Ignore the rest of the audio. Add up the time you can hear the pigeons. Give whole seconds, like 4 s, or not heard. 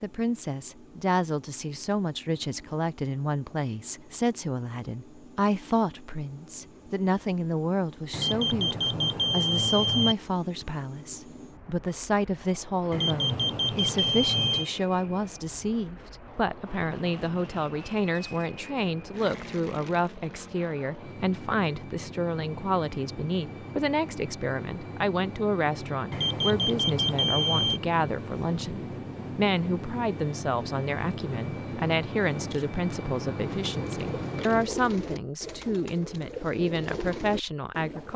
5 s.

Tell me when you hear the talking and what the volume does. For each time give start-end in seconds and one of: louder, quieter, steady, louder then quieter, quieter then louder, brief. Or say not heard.
0.0-38.1 steady.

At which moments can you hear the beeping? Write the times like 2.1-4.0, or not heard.
8.1-10.2, 12.9-14.7, 26.1-27.8.